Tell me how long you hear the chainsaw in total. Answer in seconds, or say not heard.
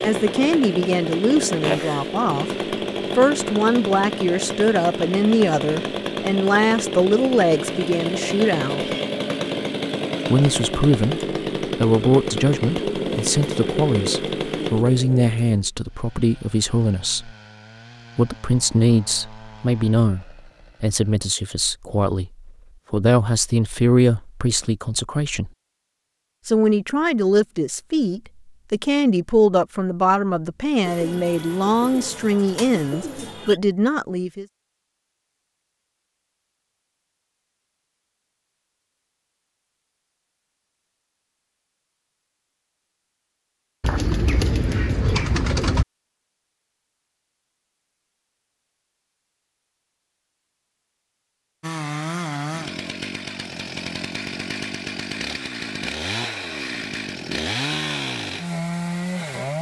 29 s.